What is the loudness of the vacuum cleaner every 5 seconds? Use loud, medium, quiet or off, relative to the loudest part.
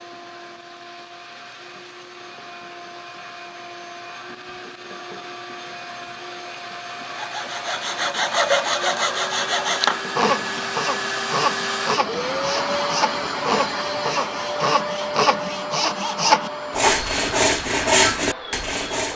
quiet, medium, loud, medium.